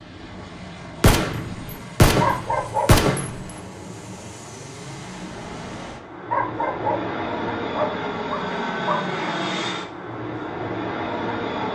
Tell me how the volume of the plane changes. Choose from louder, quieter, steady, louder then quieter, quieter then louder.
louder.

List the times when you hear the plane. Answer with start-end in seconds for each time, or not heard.
0.0-11.7.